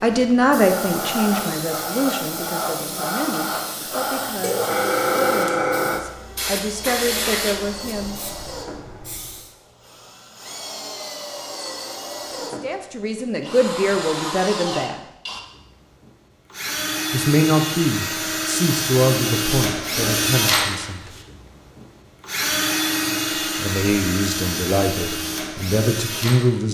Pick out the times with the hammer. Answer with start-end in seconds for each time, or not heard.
not heard.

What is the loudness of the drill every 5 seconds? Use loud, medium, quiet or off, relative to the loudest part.
quiet, quiet, medium, loud, loud, medium.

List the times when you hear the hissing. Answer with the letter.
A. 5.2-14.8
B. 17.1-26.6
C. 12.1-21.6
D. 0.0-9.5
D.